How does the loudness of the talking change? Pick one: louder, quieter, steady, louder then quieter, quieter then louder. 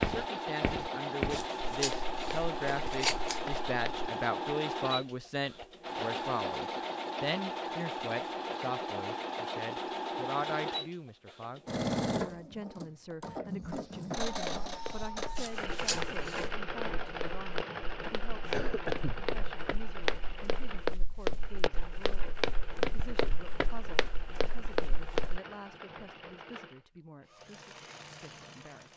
quieter.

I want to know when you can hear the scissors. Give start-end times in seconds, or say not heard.
1.3-3.5, 15.3-16.5.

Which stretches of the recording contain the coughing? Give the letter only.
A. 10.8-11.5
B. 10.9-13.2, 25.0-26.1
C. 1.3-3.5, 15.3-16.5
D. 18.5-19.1
D.